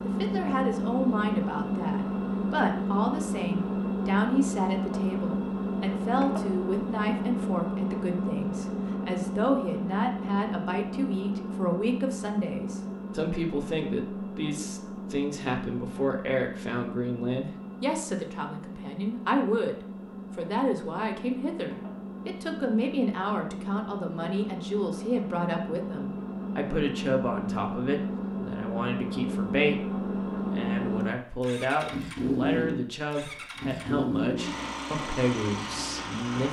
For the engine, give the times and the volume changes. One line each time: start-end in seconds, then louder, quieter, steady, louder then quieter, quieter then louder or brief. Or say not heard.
0.0-36.4 quieter then louder.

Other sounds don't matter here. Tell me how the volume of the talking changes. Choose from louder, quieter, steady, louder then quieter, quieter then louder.
steady.